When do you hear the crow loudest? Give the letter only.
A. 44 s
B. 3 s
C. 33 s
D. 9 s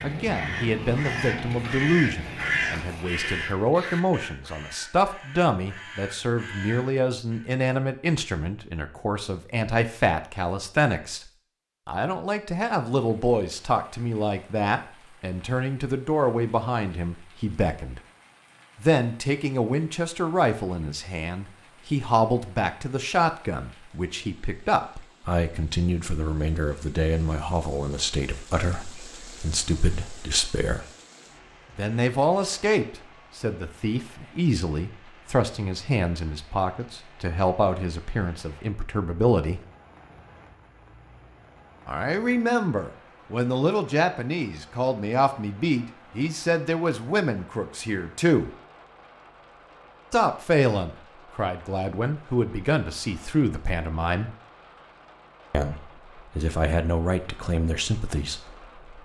B.